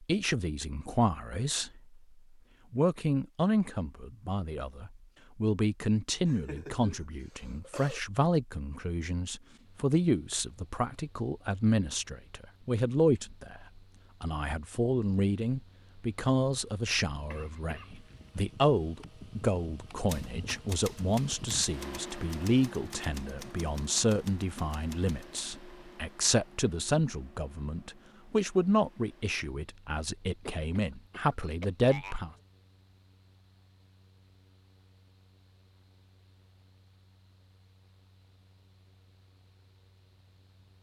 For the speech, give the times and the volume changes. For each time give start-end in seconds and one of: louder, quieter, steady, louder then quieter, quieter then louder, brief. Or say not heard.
0.0-2.0 brief
2.7-32.3 steady.